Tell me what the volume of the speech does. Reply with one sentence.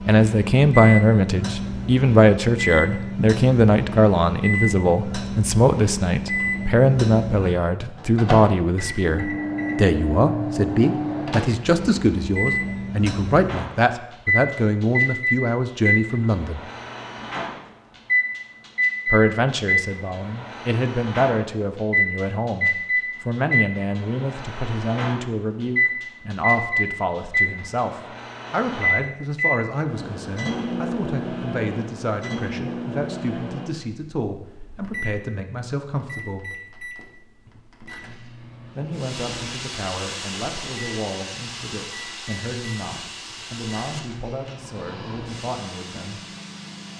The loudness of the speech goes down.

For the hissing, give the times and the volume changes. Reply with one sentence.
You can hear the hissing from 38.9 to 46.9 s, getting quieter.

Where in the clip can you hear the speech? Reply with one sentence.
You can hear the speech from 0.1 to 16.6 s, from 19.1 to 36.5 s and from 38.8 to 46.2 s.